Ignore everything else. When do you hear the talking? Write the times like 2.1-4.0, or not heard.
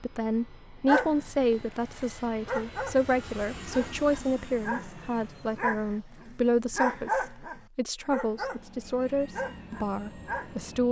0.0-10.8.